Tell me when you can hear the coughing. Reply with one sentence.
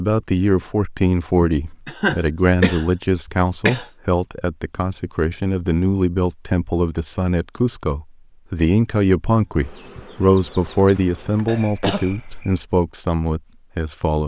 The coughing can be heard from 1.4 to 3.9 s and from 11.4 to 12.6 s.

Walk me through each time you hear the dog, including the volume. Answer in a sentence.
You can't hear the dog here.